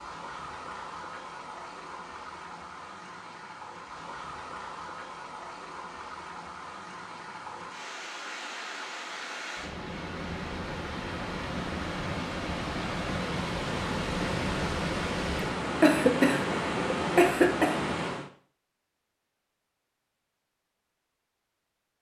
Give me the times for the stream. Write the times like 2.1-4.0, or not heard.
0.0-18.3.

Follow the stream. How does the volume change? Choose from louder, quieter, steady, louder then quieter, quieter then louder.
louder.